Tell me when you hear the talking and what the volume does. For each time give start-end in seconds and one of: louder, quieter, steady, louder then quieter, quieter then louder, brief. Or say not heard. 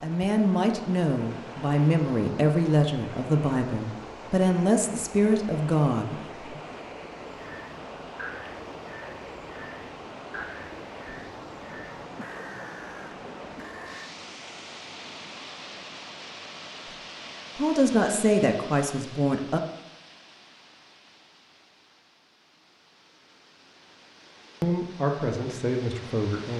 0.0-6.6 steady
17.6-19.6 brief
24.6-26.5 brief.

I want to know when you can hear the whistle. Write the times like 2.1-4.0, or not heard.
not heard.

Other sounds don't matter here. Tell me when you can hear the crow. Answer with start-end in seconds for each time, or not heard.
7.3-14.2.